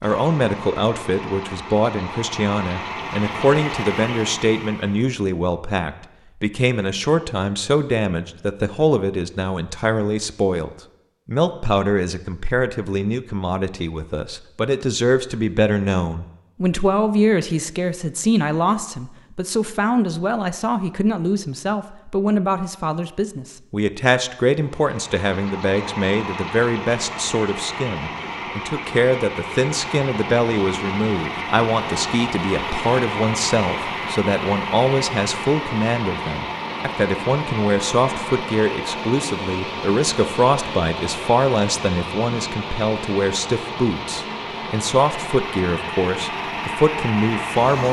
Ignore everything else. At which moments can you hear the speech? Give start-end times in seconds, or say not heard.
0.0-47.8.